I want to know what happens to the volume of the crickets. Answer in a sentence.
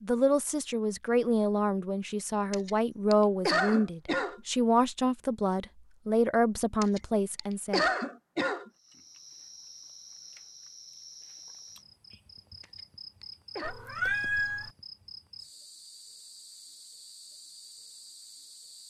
The loudness of the crickets stays about the same.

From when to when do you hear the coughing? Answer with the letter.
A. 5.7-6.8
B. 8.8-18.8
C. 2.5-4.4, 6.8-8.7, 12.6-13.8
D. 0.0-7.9
C.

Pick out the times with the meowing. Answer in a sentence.
The meowing can be heard from 13.6 to 14.7 s.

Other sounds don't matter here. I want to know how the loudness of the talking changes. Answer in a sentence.
The volume of the talking stays about the same.